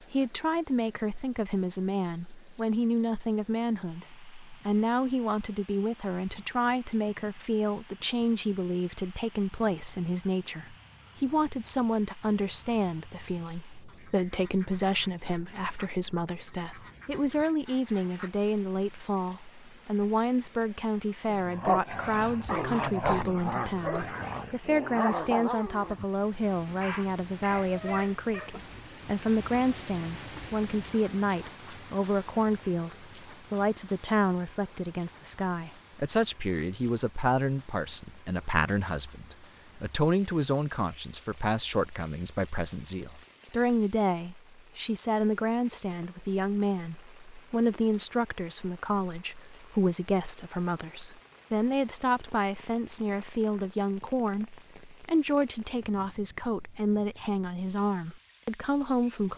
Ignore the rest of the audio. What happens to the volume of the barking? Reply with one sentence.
The loudness of the barking goes down.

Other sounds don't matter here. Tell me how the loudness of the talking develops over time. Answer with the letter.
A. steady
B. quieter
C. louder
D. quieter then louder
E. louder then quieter
A.